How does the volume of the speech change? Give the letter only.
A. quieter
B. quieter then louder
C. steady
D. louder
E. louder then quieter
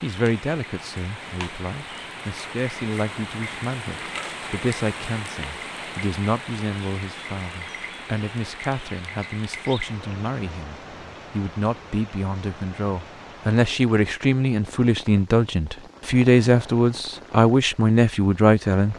D.